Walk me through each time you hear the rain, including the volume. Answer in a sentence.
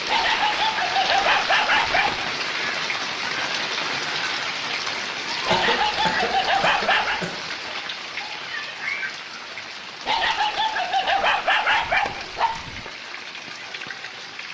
The rain can be heard from 0.0 to 14.4 s, getting quieter.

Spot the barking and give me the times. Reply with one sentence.
The barking can be heard from 0.1 to 2.3 s, from 5.5 to 7.2 s and from 10.1 to 12.9 s.